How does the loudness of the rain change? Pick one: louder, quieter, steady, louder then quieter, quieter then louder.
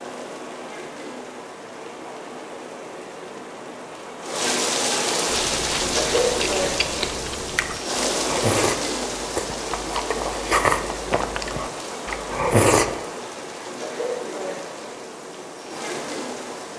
louder then quieter.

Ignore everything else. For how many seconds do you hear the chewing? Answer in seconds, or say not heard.
8 s.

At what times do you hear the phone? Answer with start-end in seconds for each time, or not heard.
not heard.